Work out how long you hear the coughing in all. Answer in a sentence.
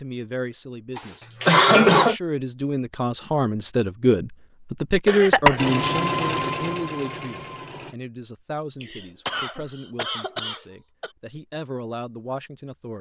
The coughing can be heard for 4 seconds in total.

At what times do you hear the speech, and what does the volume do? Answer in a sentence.
The speech can be heard from 0.0 to 12.9 s, getting louder then quieter.